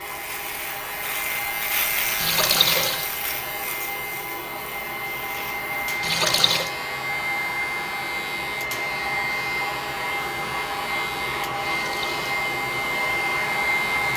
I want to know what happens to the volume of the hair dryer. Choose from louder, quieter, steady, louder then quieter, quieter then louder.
louder.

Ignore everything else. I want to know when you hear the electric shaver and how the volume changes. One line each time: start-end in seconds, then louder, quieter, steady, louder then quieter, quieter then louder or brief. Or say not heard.
0.0-14.1 quieter.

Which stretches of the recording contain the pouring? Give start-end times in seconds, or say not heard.
2.1-3.0, 6.0-6.7, 11.7-12.2.